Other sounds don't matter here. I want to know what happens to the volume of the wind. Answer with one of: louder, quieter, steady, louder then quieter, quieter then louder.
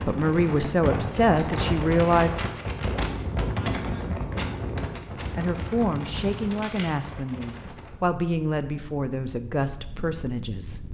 quieter.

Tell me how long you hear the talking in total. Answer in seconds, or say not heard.
8 s.